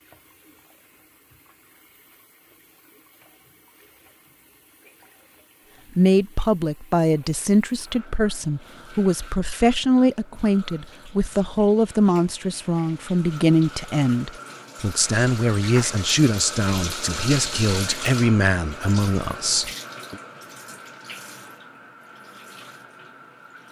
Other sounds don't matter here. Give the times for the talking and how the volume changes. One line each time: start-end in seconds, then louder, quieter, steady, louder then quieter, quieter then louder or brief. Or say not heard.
6.0-20.1 steady.